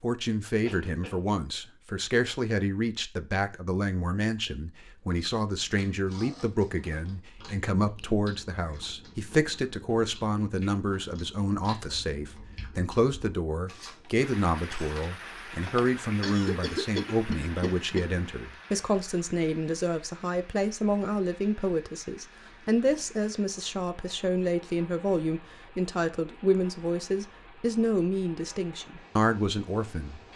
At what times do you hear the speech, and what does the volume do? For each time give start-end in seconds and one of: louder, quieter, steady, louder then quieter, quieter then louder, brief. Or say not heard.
0.0-30.2 steady.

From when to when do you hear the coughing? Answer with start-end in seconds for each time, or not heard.
0.7-1.3, 15.7-18.1.